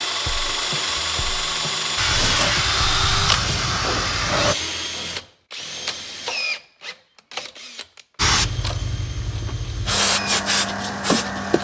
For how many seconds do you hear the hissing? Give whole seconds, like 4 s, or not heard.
6 s.